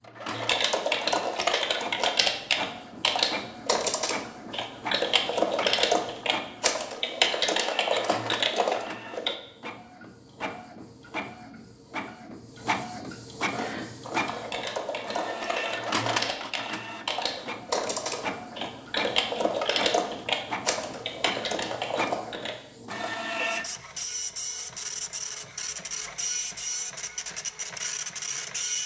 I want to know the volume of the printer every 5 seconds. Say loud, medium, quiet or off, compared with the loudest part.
medium, medium, loud, loud, loud, loud.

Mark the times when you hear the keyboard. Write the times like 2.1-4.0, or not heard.
0.3-9.3, 13.5-22.6.